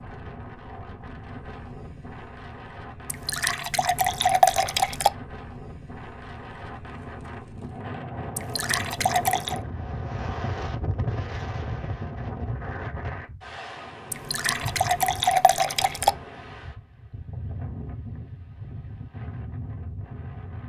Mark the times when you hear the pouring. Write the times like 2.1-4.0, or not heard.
3.0-5.1, 8.3-9.6, 14.1-16.1.